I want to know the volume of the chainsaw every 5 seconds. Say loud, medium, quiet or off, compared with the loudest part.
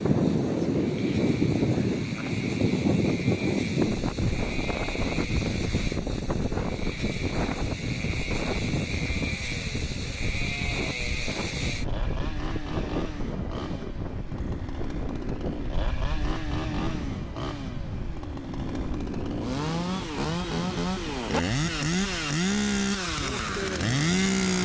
quiet, medium, medium, medium, loud.